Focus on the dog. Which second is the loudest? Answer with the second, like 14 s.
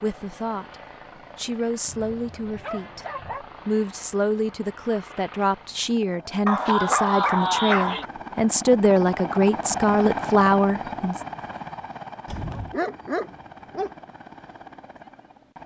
7 s.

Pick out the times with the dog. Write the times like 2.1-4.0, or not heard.
1.9-3.5, 6.5-8.1, 12.2-13.9.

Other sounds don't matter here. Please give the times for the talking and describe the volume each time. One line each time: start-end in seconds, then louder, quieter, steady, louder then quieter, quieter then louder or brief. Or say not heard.
0.0-0.8 brief
1.4-3.0 brief
3.6-11.2 louder.